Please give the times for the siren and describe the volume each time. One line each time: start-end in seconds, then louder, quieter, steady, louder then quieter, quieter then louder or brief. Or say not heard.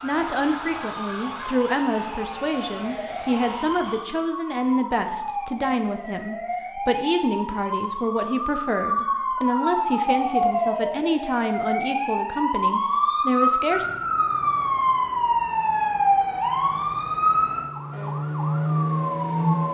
0.0-19.7 louder.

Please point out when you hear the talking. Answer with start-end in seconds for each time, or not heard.
0.0-13.9.